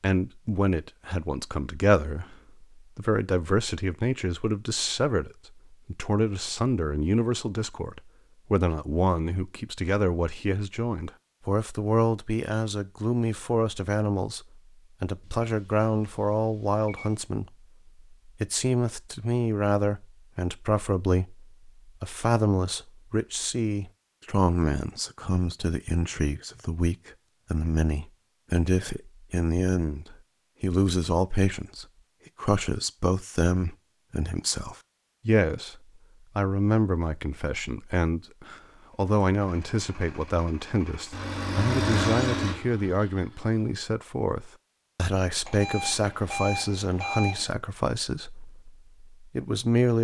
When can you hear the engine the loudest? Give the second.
42 s.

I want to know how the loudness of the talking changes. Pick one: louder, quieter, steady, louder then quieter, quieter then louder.
steady.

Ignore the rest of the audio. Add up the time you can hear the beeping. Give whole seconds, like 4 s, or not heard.
4 s.